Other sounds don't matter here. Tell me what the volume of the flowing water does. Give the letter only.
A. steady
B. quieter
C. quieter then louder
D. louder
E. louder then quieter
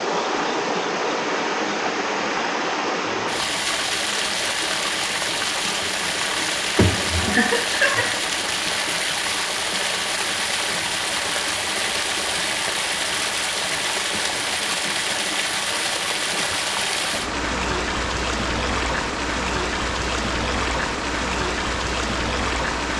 A.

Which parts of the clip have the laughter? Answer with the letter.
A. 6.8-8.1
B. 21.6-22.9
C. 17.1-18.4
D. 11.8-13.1
A.